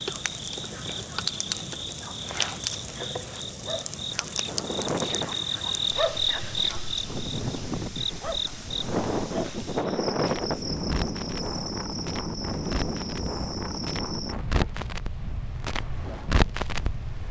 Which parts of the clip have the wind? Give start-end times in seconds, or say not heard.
4.4-17.2.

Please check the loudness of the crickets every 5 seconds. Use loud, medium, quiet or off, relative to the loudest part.
medium, loud, medium, off.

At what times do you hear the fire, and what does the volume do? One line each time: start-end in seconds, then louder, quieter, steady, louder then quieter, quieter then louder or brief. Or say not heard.
0.0-17.2 quieter then louder.